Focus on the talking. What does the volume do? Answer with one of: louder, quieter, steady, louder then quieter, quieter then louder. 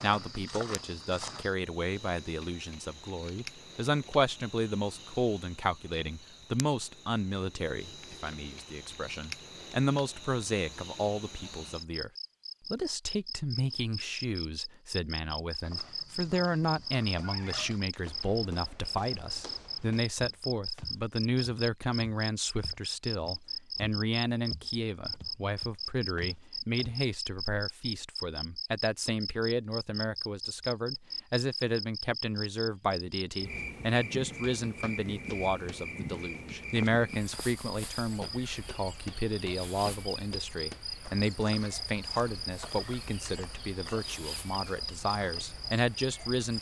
steady.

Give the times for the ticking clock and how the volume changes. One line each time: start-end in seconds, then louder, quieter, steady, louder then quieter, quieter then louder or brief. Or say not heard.
not heard.